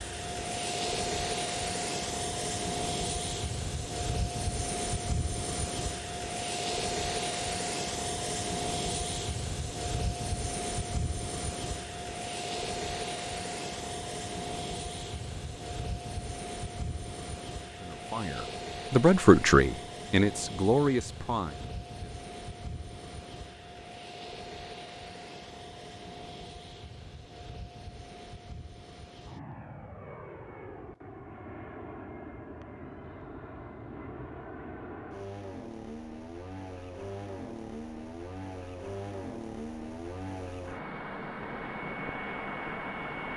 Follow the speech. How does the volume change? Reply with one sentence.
The volume of the speech goes up, then down.